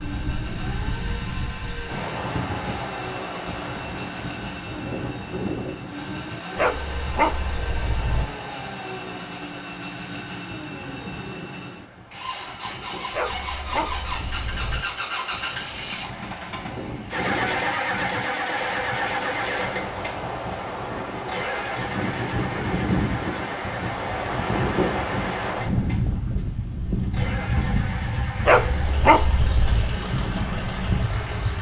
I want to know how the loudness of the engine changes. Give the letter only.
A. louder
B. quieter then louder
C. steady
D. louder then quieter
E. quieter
D.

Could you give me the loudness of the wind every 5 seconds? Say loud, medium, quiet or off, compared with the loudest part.
medium, medium, quiet, medium, loud, loud, loud.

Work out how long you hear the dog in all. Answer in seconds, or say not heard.
5 s.